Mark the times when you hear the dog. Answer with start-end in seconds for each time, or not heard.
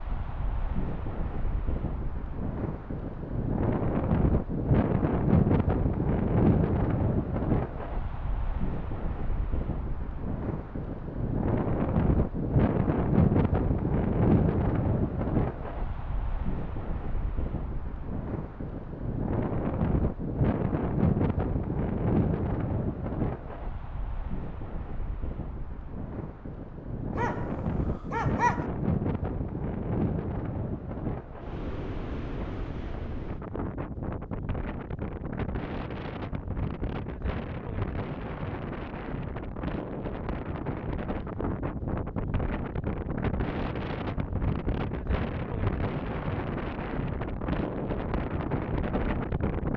27.1-28.6.